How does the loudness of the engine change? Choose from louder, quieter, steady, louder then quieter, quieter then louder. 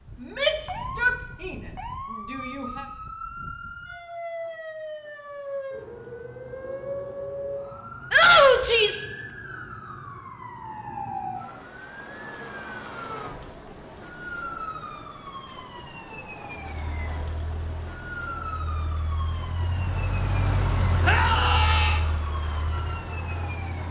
louder then quieter.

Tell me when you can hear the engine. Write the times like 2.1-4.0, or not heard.
16.8-23.8.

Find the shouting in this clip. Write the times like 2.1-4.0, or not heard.
0.2-1.6, 2.3-2.9, 8.1-9.1, 21.1-22.0.